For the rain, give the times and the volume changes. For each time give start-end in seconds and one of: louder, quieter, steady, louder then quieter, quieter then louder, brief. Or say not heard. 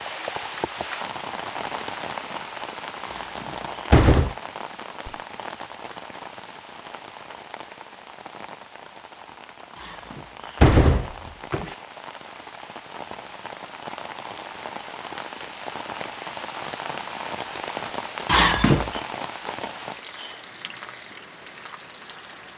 0.0-22.5 quieter then louder.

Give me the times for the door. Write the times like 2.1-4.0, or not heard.
3.1-4.3, 9.8-11.8, 18.2-19.0.